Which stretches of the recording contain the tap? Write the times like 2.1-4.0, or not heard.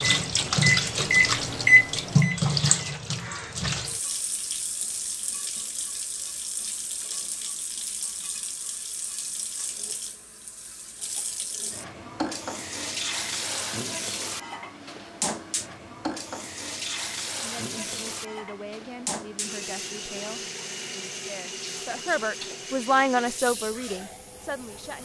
0.0-25.0.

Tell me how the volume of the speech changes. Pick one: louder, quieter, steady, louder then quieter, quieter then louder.
louder then quieter.